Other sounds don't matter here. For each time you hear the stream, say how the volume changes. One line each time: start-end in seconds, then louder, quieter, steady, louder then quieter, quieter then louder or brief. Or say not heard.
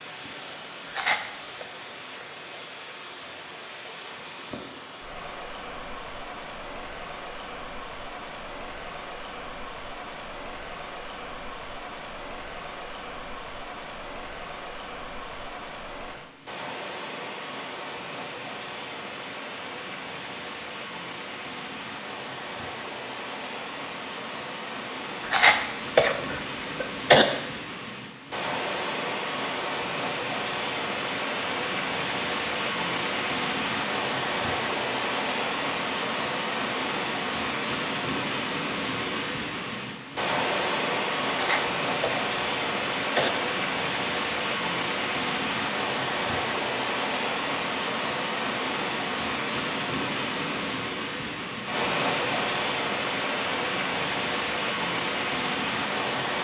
0.0-56.4 louder.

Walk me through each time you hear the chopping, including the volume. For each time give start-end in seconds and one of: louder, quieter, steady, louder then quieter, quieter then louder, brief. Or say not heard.
not heard.